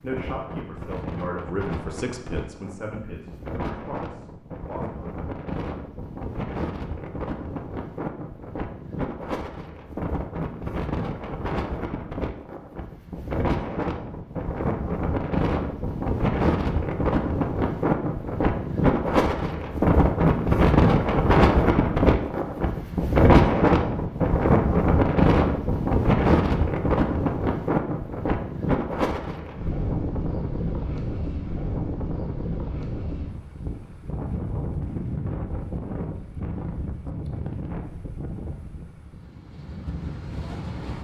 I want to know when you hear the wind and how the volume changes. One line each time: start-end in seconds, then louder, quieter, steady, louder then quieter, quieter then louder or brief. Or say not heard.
0.0-40.9 louder then quieter.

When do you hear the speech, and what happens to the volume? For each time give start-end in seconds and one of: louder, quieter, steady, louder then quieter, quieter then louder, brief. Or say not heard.
0.0-5.0 louder then quieter.